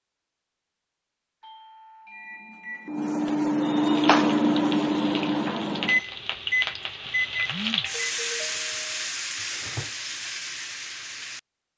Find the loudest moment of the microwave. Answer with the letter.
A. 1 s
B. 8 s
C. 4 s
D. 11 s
C.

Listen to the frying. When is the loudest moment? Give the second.
8 s.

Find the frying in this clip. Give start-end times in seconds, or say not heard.
3.8-11.4.